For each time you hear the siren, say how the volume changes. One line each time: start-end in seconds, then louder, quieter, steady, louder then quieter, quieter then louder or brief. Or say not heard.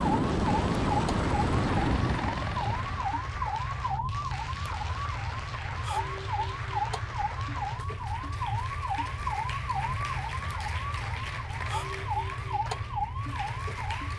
0.0-14.1 steady.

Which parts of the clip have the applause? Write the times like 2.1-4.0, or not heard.
0.1-14.1.